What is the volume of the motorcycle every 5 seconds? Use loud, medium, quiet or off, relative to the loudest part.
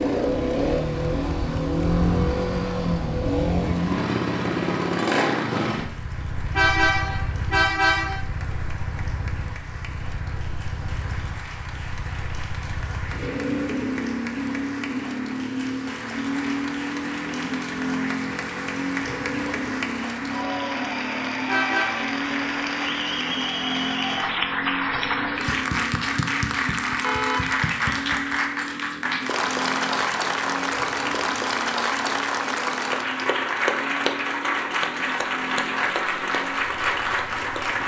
loud, medium, medium, medium, medium, medium, quiet, quiet.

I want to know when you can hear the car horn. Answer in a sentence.
You can hear the car horn from 6.5 to 8.2 s, from 21.4 to 22.1 s and from 27.0 to 27.6 s.